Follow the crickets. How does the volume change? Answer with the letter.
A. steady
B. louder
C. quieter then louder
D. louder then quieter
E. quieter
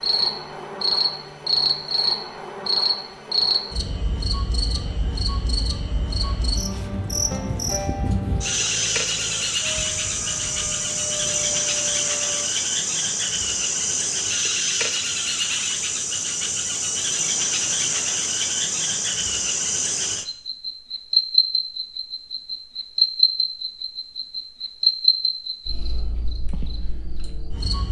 A.